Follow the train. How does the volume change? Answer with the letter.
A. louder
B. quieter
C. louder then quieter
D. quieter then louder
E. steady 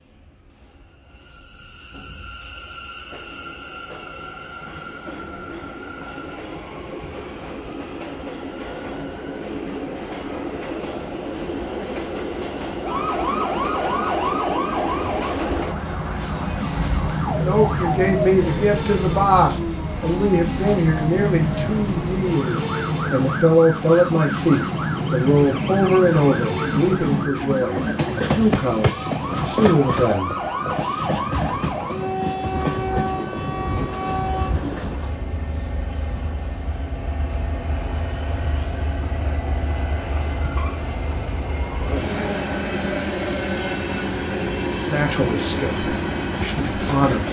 A.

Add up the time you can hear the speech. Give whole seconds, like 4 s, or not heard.
15 s.